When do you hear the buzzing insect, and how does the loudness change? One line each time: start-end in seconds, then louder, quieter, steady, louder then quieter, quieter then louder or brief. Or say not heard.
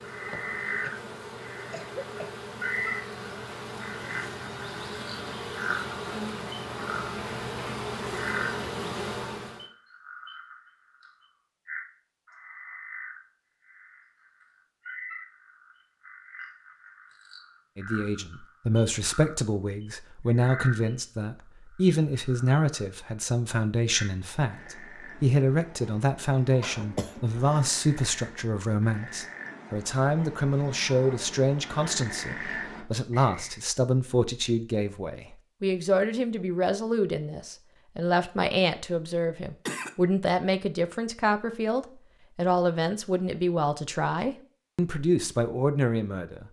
0.0-9.7 louder.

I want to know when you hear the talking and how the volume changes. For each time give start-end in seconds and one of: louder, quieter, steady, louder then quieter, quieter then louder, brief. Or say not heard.
17.8-46.4 steady.